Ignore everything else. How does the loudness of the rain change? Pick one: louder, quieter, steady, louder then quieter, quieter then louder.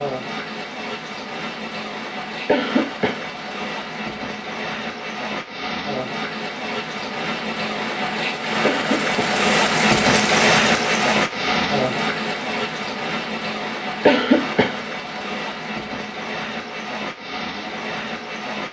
louder then quieter.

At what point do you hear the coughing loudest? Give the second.
14 s.